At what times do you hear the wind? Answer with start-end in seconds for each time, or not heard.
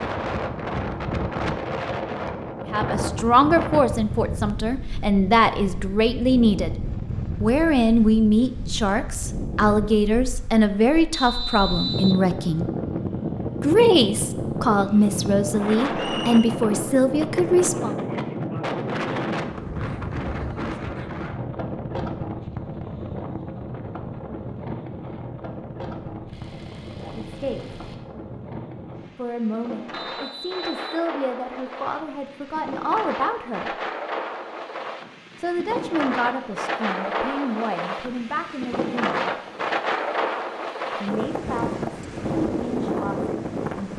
0.0-43.9.